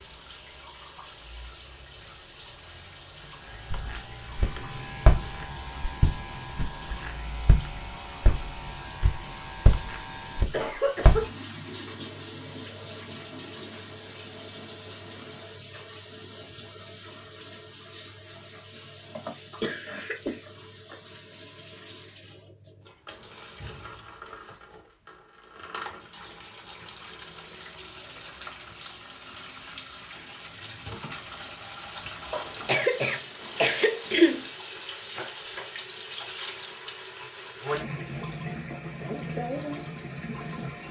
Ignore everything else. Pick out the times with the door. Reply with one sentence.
You can't hear the door here.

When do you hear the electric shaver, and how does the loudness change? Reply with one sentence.
You can hear the electric shaver from 0.0 to 10.4 s, getting louder.